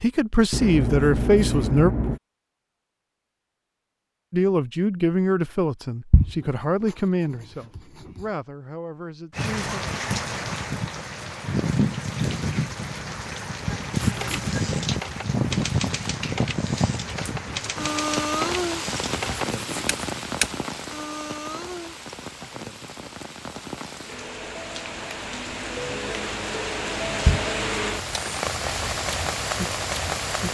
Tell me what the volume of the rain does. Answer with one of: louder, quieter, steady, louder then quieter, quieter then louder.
quieter then louder.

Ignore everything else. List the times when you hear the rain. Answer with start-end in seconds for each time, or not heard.
9.3-30.5.